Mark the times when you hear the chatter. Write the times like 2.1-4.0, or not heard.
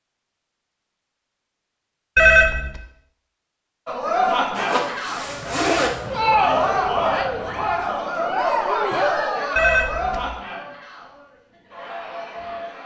3.9-12.8.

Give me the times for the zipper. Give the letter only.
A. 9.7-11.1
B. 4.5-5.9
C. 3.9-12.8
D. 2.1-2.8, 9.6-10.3
B.